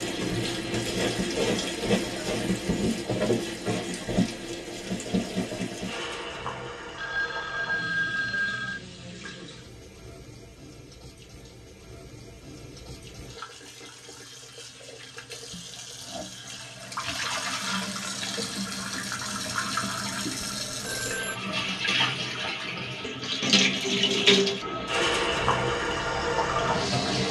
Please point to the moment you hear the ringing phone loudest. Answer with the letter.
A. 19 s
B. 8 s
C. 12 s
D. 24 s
B.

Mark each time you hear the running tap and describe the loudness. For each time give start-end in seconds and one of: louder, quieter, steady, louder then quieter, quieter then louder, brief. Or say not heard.
0.0-27.2 quieter then louder.